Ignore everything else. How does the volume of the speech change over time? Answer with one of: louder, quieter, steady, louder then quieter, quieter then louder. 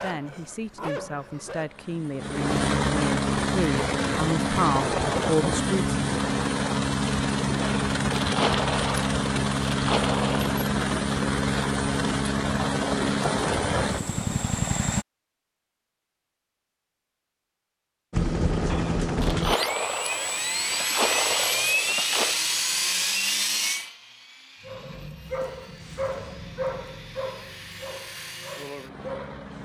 louder.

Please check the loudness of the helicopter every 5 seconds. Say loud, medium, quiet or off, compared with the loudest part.
loud, loud, loud, loud, loud, quiet.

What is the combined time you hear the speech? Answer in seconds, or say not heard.
6 s.